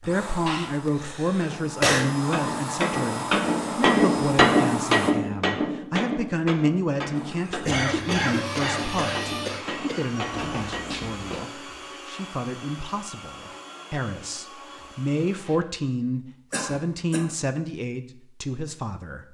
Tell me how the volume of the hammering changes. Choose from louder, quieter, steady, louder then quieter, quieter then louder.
louder then quieter.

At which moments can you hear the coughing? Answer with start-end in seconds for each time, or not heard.
0.5-2.0, 7.4-10.1, 16.5-17.3.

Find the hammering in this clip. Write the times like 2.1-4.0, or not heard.
1.4-11.1.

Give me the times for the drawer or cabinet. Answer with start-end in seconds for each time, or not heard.
10.3-11.5.